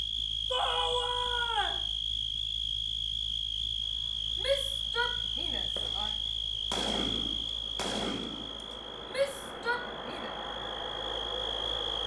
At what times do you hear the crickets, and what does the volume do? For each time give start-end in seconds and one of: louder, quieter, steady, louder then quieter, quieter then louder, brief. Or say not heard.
0.0-12.0 quieter.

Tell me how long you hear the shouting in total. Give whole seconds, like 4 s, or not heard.
4 s.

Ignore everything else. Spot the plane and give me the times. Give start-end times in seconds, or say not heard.
3.8-12.0.